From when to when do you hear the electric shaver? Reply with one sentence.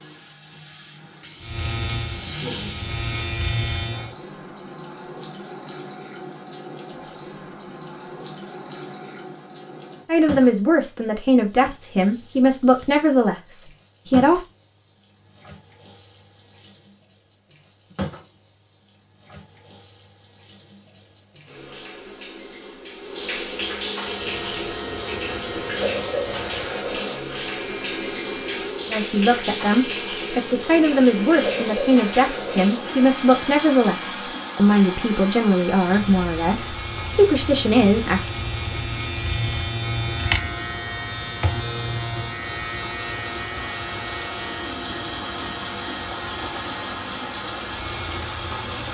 The electric shaver can be heard from 1.4 to 4.2 s and from 23.9 to 48.8 s.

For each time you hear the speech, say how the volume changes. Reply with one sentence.
The speech can be heard from 10.1 to 14.4 s, getting quieter; and from 28.9 to 38.2 s, at a steady volume.